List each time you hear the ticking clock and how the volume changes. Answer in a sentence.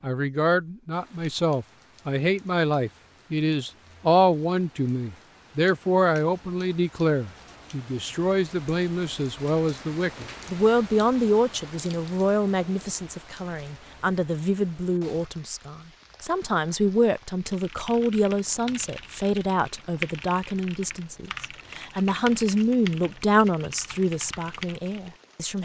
You can't hear the ticking clock here.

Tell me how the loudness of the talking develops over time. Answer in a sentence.
The volume of the talking stays about the same.